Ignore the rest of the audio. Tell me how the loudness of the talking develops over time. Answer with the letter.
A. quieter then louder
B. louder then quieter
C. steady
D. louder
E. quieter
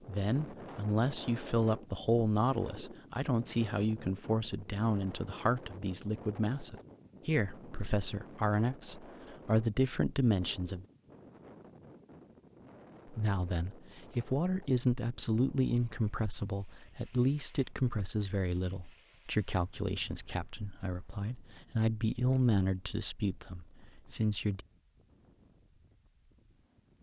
C.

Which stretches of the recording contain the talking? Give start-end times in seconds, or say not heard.
0.1-10.8, 13.1-24.6.